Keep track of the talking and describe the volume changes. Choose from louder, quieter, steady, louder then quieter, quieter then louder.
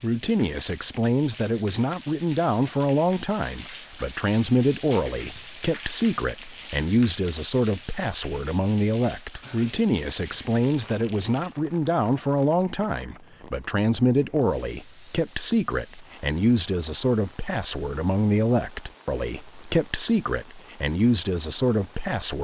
steady.